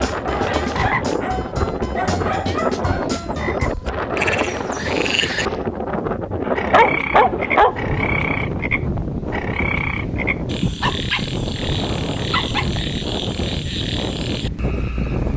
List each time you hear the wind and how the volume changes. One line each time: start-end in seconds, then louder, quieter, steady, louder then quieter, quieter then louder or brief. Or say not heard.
0.0-15.3 steady.